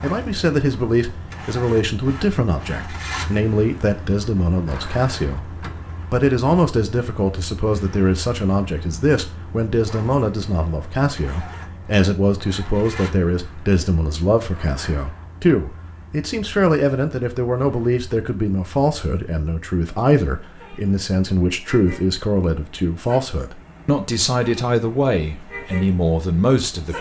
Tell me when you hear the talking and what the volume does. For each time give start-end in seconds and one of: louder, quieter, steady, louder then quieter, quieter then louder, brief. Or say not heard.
0.0-26.9 steady.